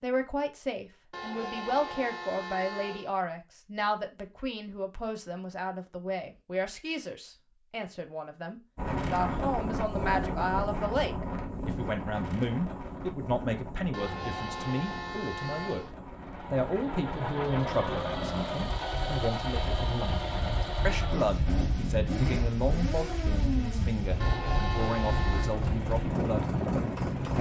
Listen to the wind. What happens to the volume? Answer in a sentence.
The loudness of the wind goes down, then up.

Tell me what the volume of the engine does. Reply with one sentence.
The loudness of the engine stays about the same.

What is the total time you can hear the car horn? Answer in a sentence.
The car horn can be heard for 5 seconds in total.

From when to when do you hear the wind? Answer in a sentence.
The wind can be heard from 8.8 to 27.3 s.